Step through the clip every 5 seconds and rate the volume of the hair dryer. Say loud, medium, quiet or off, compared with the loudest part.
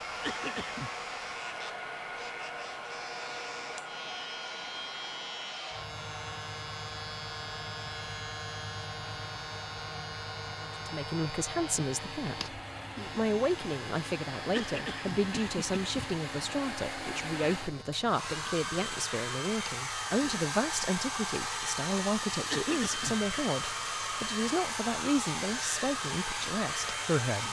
medium, medium, medium, loud, loud, loud.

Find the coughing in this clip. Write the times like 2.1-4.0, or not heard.
0.2-0.9, 14.5-16.1, 22.4-23.2.